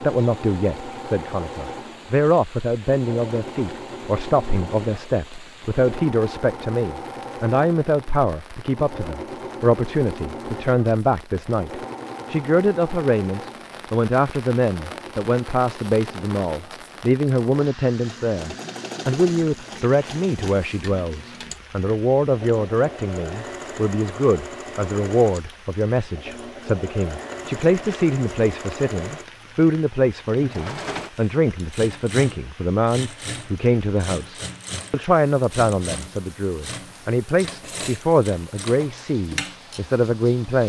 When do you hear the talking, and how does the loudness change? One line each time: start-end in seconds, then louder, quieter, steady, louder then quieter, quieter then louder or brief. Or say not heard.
0.0-40.6 steady.